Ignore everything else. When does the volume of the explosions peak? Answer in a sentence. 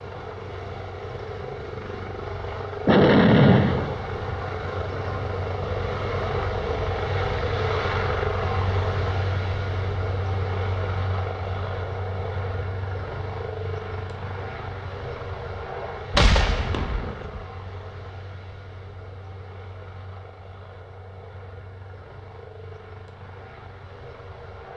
The loudest moment of the explosions is at 3 seconds.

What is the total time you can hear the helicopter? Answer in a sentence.
The helicopter can be heard for 25 seconds in total.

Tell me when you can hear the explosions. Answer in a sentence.
The explosions can be heard from 2.9 to 4.0 s and from 16.1 to 17.4 s.